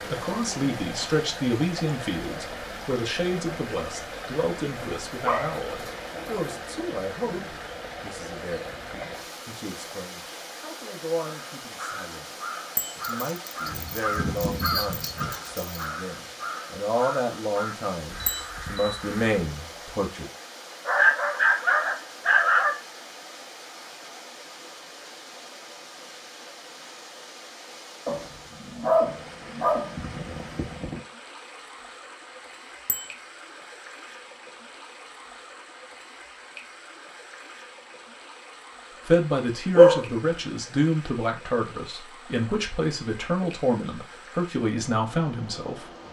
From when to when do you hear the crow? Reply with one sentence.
You can hear the crow from 11.2 to 19.5 s.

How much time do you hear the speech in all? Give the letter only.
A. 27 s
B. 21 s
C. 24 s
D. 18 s
A.